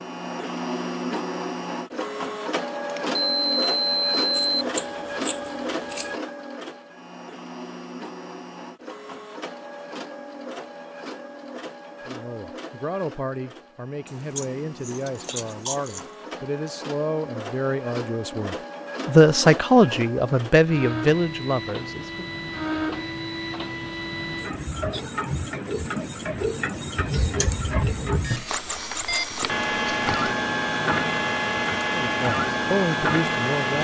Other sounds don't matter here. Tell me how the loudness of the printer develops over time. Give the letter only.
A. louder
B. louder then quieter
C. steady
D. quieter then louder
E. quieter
D.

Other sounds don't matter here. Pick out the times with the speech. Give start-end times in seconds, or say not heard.
12.1-22.3, 31.9-33.7.